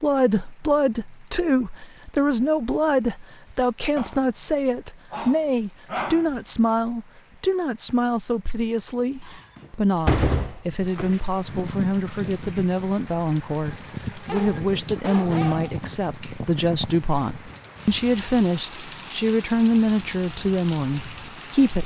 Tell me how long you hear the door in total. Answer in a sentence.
The door can be heard for 2 seconds in total.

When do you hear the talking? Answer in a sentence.
The talking can be heard from 0.0 to 21.8 s.